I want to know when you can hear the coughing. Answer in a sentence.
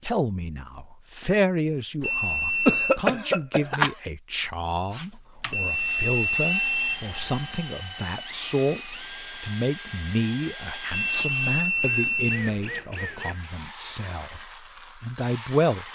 You can hear the coughing from 2.6 to 4.0 s.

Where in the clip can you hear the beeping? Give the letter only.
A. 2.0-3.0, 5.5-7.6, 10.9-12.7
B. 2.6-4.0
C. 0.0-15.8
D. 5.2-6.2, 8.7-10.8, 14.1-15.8
A.